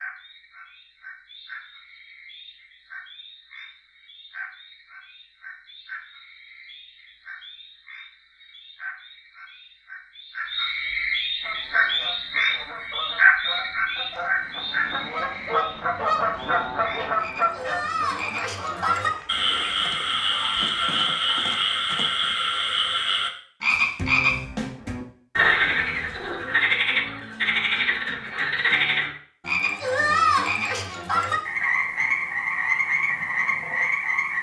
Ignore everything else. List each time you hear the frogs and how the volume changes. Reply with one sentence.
The frogs can be heard from 0.0 to 34.3 s, getting louder.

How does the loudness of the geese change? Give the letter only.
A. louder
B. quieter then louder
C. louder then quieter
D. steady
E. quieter
C.